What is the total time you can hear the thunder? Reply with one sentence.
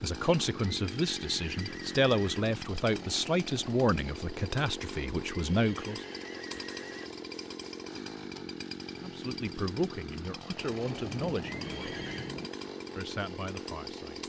The thunder can be heard for 2 seconds in total.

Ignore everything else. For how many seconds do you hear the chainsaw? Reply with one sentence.
You can hear the chainsaw for 14 seconds altogether.